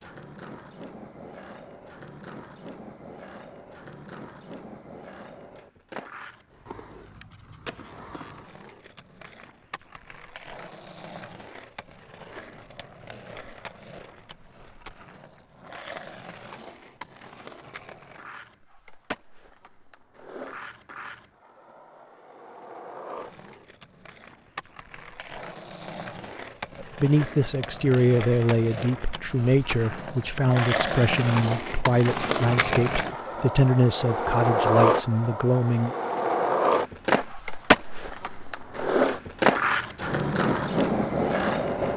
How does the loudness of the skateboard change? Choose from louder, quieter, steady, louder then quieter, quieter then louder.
louder.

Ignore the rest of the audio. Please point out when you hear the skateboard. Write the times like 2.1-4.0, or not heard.
0.0-41.9.